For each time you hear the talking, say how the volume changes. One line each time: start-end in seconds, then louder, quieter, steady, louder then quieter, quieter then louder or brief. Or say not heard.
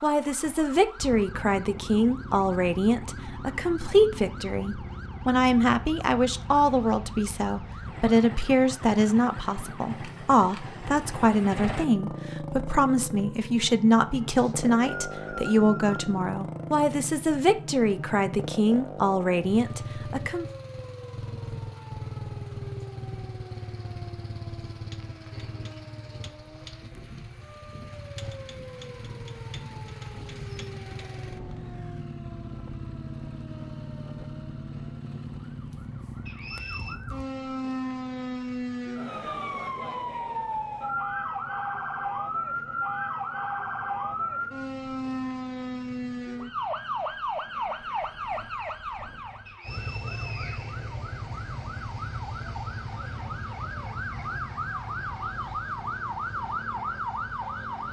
0.0-20.4 steady.